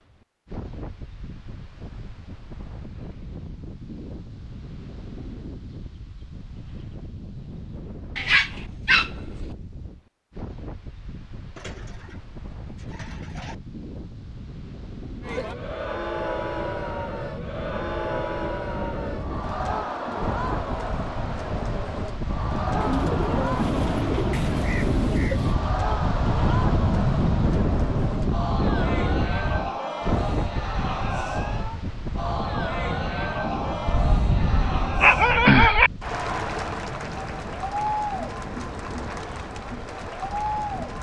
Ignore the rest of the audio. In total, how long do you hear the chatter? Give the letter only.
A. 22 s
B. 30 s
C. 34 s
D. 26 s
D.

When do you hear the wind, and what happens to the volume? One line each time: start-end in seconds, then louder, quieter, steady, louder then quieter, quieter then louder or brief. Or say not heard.
0.0-40.9 louder then quieter.